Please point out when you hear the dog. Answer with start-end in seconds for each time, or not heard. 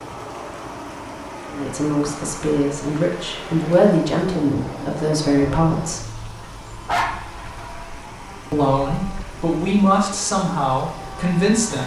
6.4-7.2.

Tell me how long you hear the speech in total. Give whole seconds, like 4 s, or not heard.
8 s.